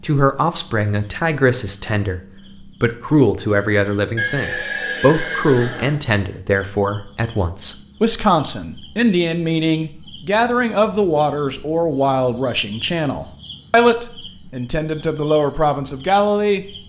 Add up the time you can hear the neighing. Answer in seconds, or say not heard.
2 s.